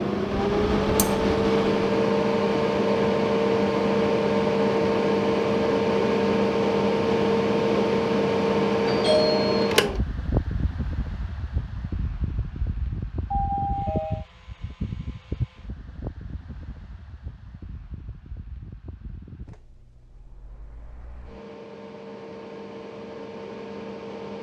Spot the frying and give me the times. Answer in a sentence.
You can't hear the frying here.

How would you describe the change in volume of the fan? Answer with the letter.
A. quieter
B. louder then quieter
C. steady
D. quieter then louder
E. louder
A.